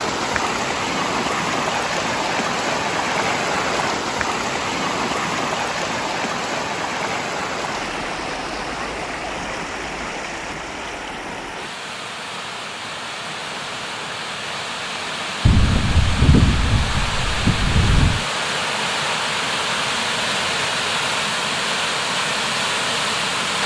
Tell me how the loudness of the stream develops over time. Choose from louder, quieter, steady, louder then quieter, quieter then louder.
quieter then louder.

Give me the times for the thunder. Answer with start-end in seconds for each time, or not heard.
15.4-18.2.